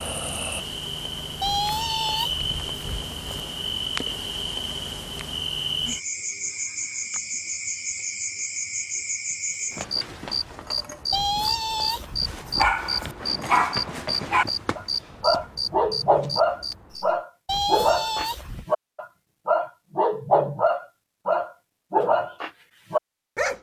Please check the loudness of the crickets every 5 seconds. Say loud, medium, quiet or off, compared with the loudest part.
loud, loud, loud, loud, off.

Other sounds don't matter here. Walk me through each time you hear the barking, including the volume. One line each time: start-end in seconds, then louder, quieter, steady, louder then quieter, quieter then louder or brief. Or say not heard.
12.6-23.5 steady.